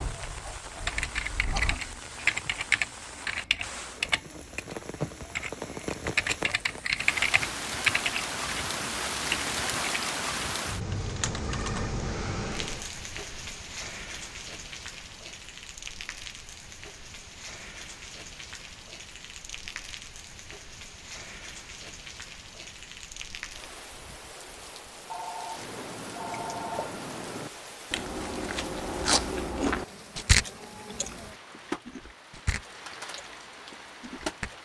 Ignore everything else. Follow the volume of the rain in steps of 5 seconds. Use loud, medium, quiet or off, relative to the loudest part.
medium, loud, loud, medium, medium, medium, medium.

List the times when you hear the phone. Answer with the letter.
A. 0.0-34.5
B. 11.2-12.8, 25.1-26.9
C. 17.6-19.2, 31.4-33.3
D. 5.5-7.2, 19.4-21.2
B.